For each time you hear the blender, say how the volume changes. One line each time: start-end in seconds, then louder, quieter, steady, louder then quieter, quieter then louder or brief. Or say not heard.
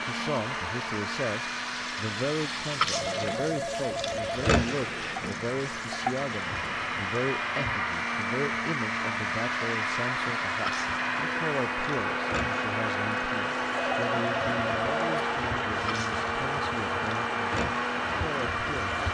0.0-19.1 louder.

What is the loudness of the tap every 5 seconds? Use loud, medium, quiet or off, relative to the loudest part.
loud, medium, medium, medium.